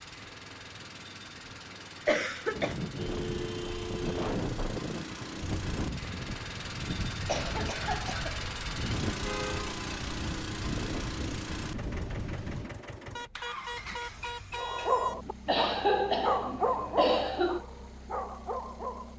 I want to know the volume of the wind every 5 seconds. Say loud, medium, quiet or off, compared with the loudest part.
loud, loud, loud, off.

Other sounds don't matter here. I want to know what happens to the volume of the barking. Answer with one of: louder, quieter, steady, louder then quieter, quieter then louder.
quieter then louder.